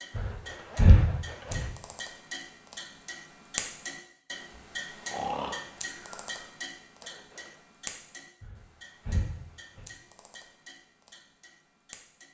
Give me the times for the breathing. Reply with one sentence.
You can hear the breathing from 0.1 to 1.6 s, from 5.0 to 6.2 s and from 8.4 to 9.8 s.